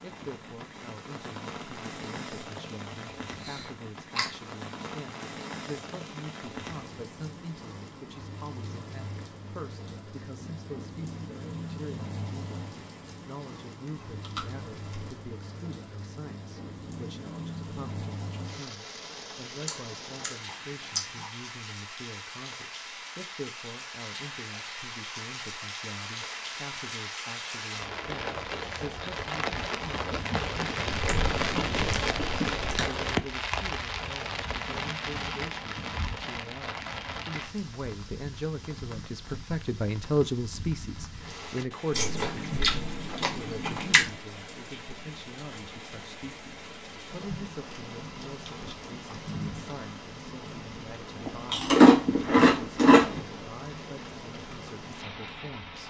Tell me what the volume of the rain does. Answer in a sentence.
The volume of the rain goes up, then down.